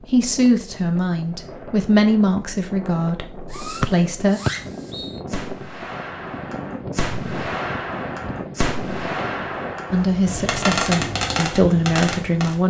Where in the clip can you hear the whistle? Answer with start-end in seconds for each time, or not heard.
3.8-5.2.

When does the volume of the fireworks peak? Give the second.
11 s.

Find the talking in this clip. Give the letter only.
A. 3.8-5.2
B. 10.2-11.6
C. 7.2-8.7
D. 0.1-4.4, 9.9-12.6
D.